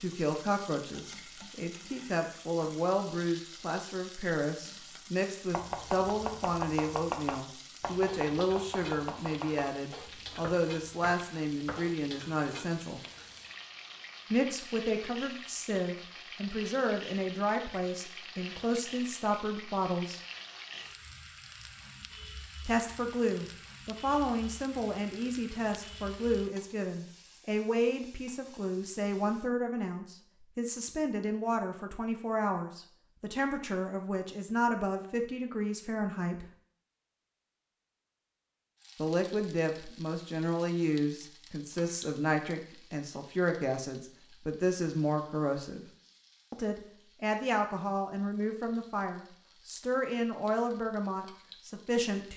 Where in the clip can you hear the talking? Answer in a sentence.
You can hear the talking from 0.0 to 13.0 s, from 14.3 to 20.2 s, from 22.6 to 36.5 s, from 39.0 to 45.9 s and from 46.5 to 52.3 s.